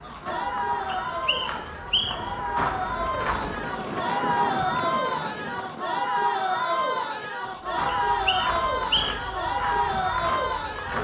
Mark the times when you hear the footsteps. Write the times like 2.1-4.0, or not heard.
0.0-3.8, 7.5-10.9.